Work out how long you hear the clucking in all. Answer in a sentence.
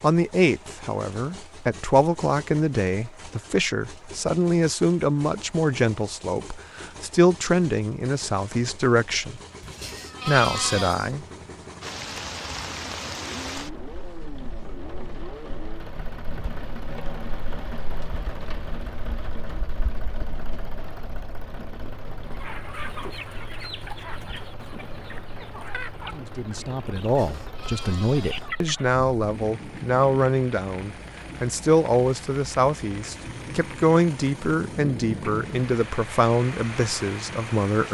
The clucking can be heard for 7 seconds in total.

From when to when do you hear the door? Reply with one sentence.
You can't hear the door here.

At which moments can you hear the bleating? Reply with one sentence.
The bleating can be heard from 9.6 to 11.1 s and from 26.9 to 28.5 s.